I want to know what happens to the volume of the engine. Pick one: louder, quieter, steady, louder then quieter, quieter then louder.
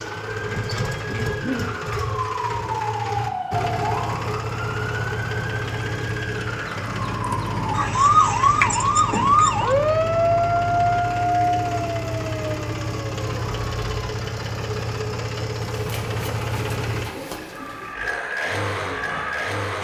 steady.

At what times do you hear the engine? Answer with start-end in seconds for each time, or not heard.
0.0-19.7.